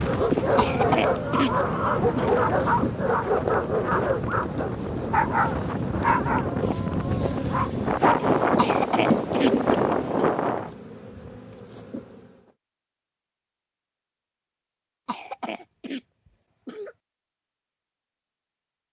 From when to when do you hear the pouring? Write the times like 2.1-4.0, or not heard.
not heard.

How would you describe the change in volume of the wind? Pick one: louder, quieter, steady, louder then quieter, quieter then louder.
louder.